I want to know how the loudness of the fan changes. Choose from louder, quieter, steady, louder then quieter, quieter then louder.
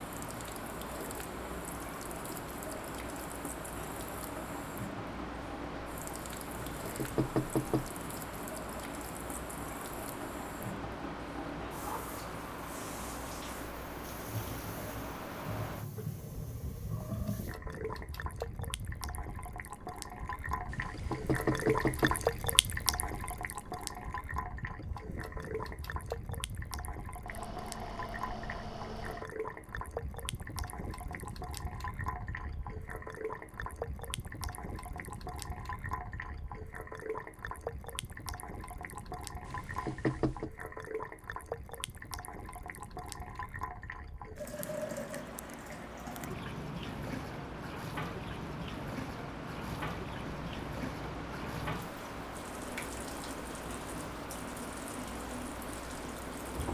quieter then louder.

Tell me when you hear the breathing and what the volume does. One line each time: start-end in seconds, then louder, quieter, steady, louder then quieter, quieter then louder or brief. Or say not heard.
not heard.